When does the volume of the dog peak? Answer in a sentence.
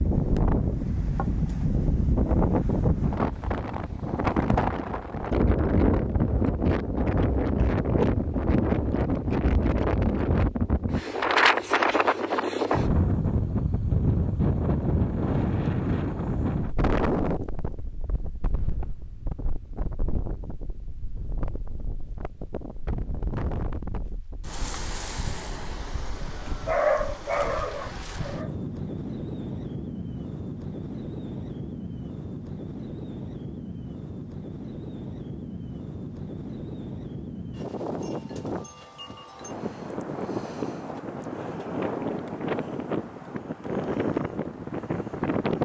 The volume of the dog peaks at 27 seconds.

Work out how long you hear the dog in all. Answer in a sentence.
The dog can be heard for 2 seconds in total.